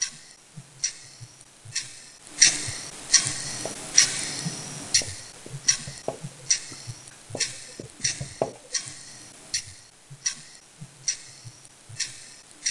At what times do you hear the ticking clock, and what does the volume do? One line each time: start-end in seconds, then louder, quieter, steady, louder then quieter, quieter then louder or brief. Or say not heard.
0.0-12.6 quieter.